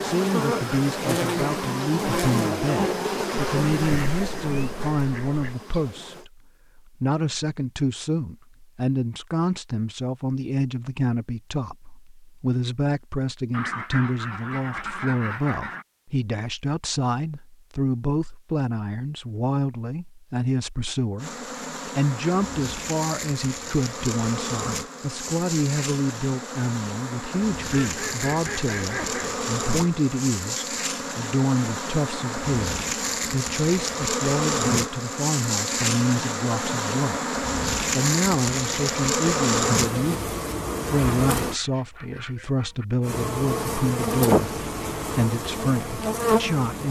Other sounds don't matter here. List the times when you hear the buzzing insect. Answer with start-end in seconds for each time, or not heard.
0.0-6.2, 21.2-41.6, 43.0-46.8.